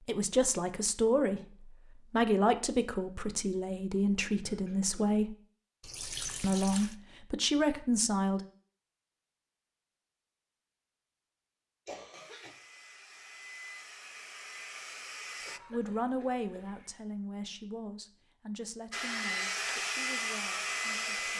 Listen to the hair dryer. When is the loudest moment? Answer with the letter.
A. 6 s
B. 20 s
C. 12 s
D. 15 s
B.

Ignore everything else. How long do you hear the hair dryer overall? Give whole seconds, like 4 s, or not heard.
6 s.